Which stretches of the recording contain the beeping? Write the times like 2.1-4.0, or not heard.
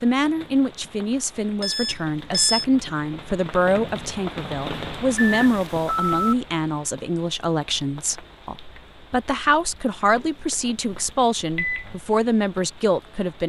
1.6-2.6, 5.2-6.3, 10.9-11.8.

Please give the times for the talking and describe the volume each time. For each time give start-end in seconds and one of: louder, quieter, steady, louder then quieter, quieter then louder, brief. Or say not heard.
0.0-13.4 steady.